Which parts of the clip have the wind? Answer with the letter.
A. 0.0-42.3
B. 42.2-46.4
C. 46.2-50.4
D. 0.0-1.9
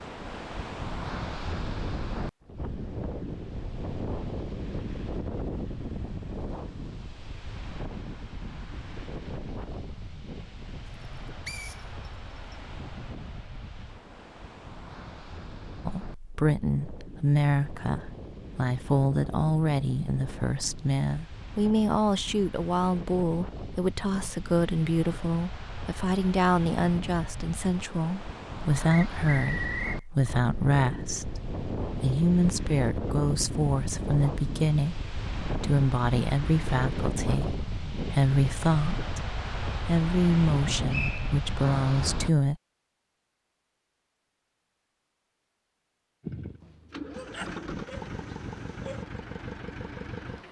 A.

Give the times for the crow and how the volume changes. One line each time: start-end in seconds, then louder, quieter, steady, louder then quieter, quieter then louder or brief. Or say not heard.
not heard.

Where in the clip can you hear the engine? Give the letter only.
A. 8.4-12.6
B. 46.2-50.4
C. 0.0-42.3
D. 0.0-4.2
B.